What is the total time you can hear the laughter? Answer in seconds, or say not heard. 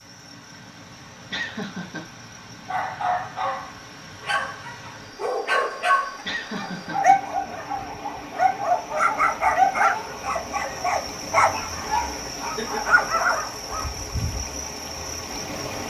3 s.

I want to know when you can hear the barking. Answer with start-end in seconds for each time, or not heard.
2.6-13.9.